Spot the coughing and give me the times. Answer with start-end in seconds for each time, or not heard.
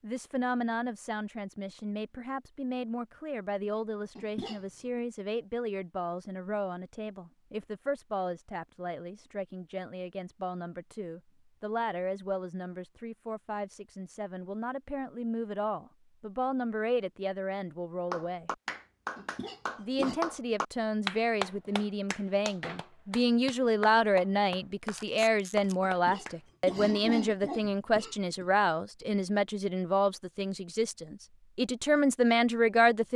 4.2-4.6, 19.1-20.2, 25.8-28.4.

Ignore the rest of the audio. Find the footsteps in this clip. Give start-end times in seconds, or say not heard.
not heard.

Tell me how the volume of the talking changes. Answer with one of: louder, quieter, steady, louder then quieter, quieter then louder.
louder.